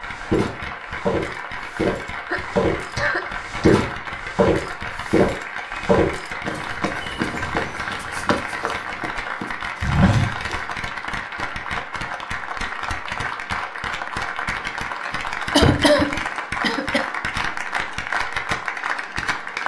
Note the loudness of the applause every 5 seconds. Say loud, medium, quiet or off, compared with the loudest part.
medium, loud, loud, loud.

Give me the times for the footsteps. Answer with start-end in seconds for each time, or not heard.
0.1-10.6.